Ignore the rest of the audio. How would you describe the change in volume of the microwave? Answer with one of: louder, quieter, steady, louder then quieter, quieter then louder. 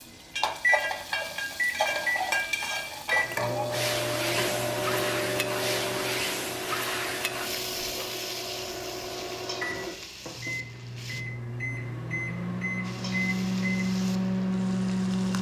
quieter then louder.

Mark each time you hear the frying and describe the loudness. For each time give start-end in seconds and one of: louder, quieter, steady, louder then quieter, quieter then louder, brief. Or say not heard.
0.0-11.2 quieter
12.8-15.3 brief.